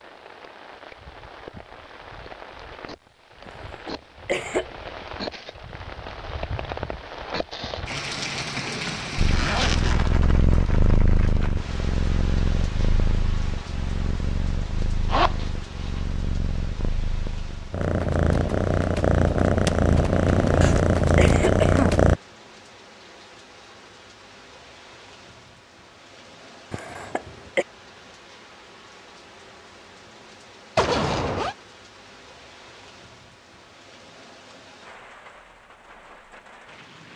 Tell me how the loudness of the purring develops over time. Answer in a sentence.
The loudness of the purring goes down, then up.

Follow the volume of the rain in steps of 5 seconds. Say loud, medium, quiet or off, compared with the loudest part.
medium, loud, medium, quiet, quiet, quiet, quiet, quiet.